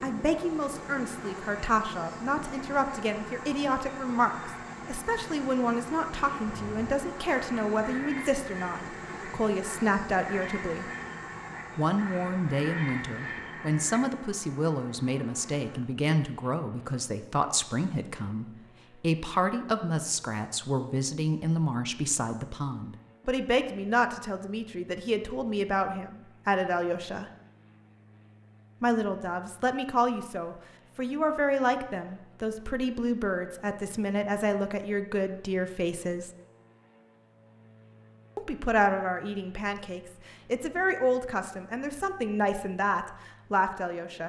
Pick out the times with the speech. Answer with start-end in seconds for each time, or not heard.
0.0-10.9, 11.8-27.2, 28.8-36.3, 38.4-44.2.